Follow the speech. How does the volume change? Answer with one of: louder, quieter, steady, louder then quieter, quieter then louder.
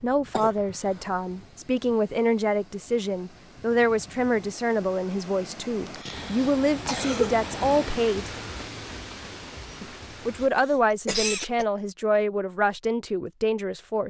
steady.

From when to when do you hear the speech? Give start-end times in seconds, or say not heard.
0.0-8.3, 9.8-14.0.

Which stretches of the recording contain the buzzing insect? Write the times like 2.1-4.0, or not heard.
not heard.